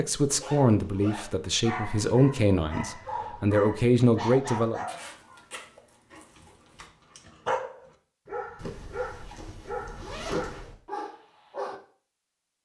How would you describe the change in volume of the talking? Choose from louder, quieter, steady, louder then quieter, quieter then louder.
quieter then louder.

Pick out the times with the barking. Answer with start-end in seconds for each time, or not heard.
1.6-11.8.